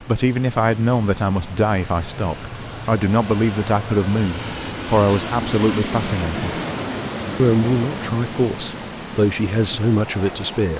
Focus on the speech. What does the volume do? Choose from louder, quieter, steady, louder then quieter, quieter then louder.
steady.